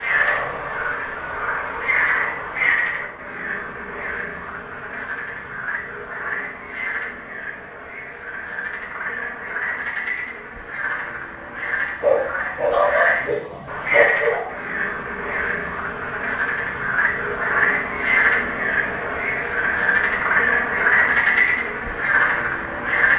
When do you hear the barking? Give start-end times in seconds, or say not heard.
12.0-14.4.